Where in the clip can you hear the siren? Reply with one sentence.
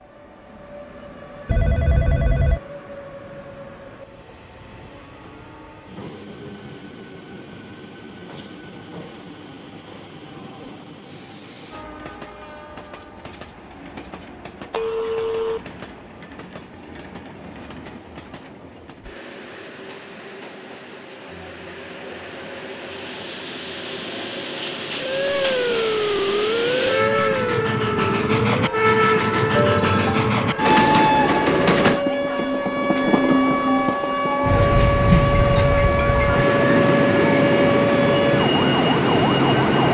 You can hear the siren from 24.9 to 39.8 s.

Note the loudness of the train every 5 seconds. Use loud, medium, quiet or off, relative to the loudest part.
quiet, quiet, quiet, quiet, quiet, loud, loud, loud.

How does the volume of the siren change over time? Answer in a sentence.
The loudness of the siren goes down, then up.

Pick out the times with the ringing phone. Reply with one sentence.
You can hear the ringing phone from 1.4 to 2.6 s, from 14.7 to 15.6 s and from 29.6 to 30.2 s.